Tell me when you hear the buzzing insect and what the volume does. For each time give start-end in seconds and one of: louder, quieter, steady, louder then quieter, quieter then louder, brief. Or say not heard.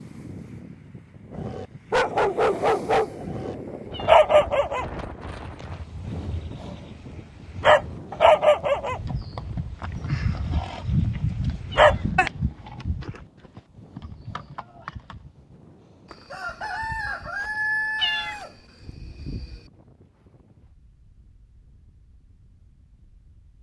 not heard.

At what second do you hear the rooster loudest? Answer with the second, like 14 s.
18 s.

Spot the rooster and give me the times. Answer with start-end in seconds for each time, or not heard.
16.1-19.7.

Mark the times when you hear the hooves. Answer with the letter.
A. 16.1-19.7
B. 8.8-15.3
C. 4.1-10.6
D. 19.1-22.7
B.